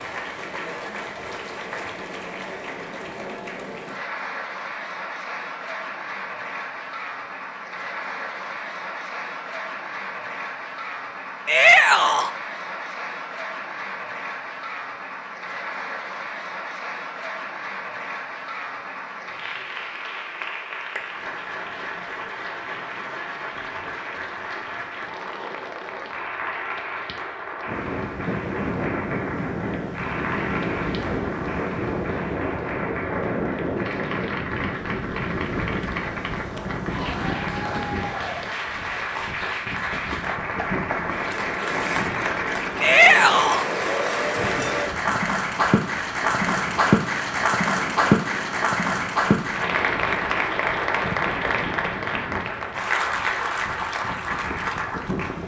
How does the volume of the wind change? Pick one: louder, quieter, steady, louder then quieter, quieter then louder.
quieter.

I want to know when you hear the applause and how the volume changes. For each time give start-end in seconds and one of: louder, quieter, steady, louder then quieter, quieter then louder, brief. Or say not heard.
0.0-55.4 louder.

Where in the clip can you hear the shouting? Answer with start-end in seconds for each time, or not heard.
11.4-12.3, 42.8-43.6.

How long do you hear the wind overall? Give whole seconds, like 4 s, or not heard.
28 s.